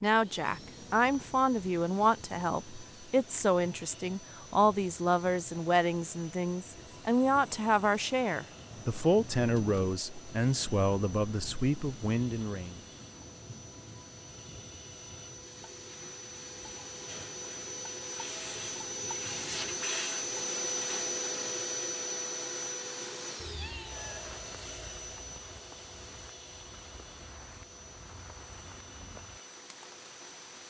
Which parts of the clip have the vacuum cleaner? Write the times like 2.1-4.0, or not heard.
0.0-30.6.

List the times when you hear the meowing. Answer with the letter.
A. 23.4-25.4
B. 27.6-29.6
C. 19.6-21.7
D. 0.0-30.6
A.